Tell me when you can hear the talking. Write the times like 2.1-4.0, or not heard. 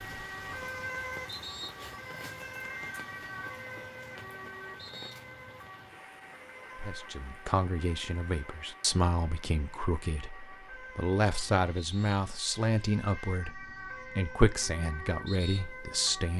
6.8-16.3.